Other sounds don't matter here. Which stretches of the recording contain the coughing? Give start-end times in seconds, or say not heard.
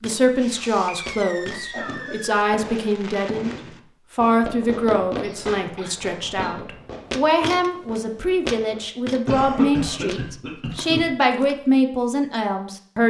1.7-2.1, 5.2-6.5, 9.2-11.1.